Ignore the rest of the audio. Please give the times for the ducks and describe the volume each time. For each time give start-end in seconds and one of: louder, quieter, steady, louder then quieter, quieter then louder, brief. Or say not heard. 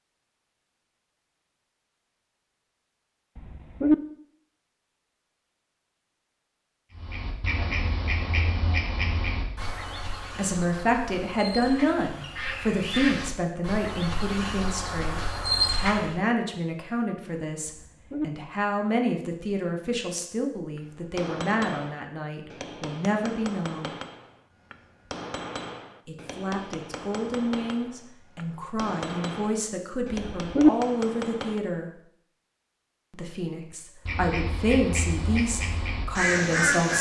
7.0-16.1 quieter then louder
34.0-36.9 brief.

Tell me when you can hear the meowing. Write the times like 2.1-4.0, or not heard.
3.4-4.0, 17.6-18.2, 30.1-30.7.